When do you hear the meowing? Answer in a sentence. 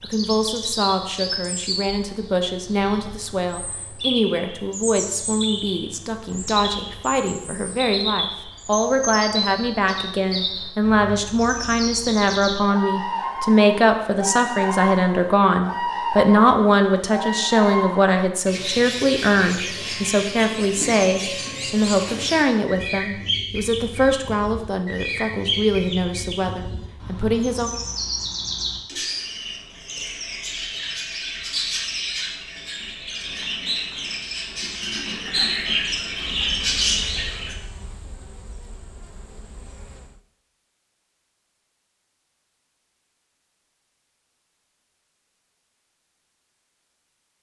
You can't hear the meowing here.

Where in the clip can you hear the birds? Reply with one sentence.
You can hear the birds from 0.0 to 37.5 s.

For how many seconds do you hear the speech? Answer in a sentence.
The speech can be heard for 28 seconds in total.